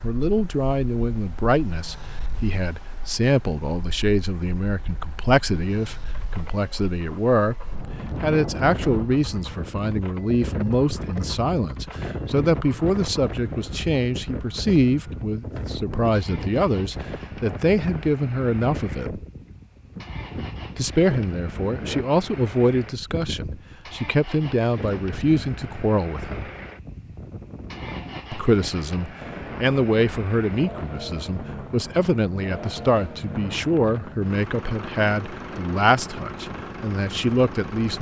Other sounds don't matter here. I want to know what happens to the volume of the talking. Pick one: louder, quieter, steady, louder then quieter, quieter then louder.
steady.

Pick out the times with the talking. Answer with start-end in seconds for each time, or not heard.
0.0-19.2, 20.8-26.5, 28.3-37.9.